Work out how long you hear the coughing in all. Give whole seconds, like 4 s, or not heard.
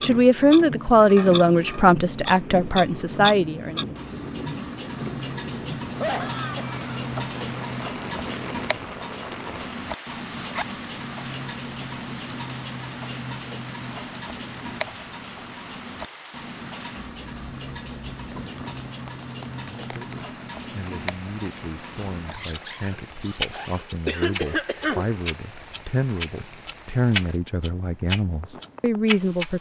3 s.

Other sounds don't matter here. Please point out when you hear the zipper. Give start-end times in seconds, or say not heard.
10.3-10.8, 22.2-23.9.